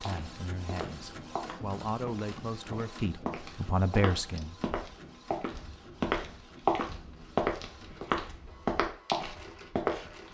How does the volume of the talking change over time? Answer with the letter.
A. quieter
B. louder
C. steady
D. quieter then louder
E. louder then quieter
B.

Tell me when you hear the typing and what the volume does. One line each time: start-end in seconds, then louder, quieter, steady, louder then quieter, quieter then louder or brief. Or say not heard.
not heard.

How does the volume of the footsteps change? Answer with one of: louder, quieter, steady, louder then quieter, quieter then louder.
louder.